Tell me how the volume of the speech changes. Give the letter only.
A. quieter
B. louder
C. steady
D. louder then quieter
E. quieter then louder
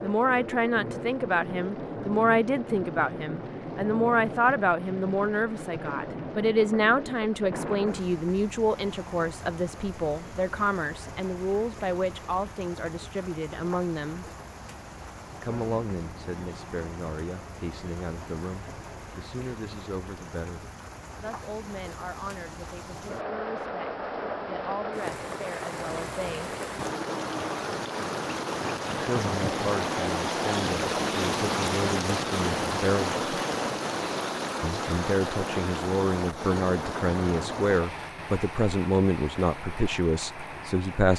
E.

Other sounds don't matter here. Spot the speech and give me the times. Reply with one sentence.
The speech can be heard from 0.0 to 14.2 s, from 15.4 to 26.6 s, from 29.0 to 33.2 s and from 34.6 to 41.1 s.